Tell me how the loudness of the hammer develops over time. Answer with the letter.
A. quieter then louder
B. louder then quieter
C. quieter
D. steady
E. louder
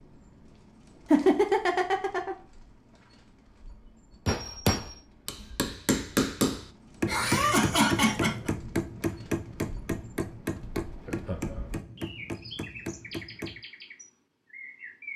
C.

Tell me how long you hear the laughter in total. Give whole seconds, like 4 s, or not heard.
3 s.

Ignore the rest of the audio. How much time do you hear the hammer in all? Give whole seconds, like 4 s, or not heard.
9 s.